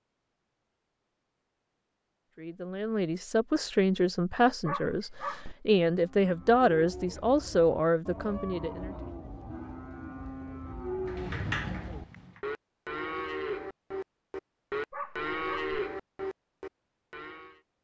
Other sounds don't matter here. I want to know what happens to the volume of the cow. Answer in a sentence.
The loudness of the cow goes up.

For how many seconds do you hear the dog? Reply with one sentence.
You can hear the dog for 2 seconds altogether.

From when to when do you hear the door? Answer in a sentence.
The door can be heard from 11.1 to 12.4 s.